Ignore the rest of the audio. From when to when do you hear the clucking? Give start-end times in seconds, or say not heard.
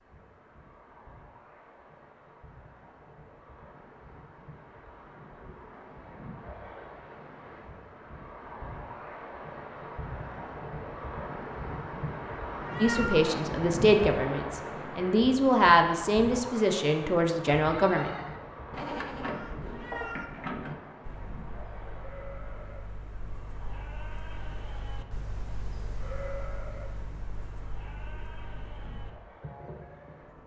not heard.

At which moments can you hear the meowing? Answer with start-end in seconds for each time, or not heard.
12.7-13.3, 19.7-20.3.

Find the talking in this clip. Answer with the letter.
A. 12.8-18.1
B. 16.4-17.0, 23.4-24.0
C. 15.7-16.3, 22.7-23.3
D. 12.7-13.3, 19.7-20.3
A.